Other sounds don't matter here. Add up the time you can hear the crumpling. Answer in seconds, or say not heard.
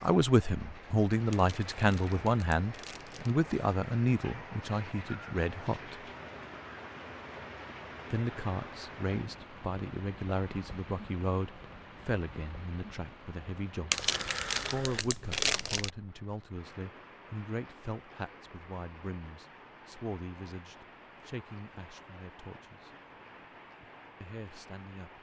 4 s.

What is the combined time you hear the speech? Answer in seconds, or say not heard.
22 s.